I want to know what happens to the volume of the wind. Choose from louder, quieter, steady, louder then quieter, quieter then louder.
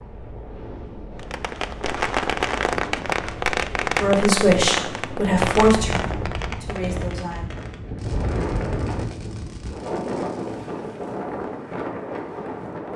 louder.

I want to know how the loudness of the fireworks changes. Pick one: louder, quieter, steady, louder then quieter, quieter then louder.
quieter.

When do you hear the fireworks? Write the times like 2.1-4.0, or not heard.
1.1-10.7.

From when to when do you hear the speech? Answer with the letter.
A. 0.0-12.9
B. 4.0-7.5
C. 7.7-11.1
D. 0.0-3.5
B.